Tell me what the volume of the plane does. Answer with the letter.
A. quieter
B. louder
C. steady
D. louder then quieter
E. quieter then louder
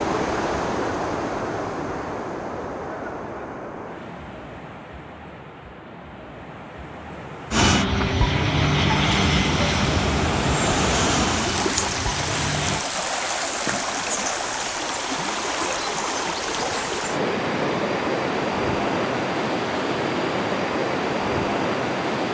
A.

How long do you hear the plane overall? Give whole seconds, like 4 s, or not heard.
5 s.